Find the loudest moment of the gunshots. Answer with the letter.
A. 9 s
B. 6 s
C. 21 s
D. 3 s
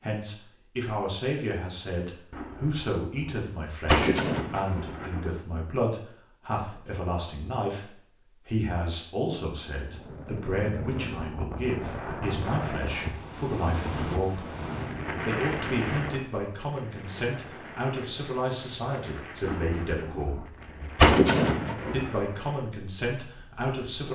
C.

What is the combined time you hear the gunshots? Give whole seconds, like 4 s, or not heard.
6 s.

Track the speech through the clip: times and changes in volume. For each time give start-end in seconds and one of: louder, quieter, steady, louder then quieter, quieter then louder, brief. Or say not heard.
0.0-14.4 steady
15.2-20.4 steady
21.9-24.1 brief.